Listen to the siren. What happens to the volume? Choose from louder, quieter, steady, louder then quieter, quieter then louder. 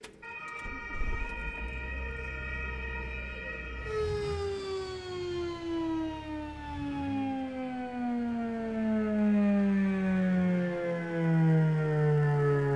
louder.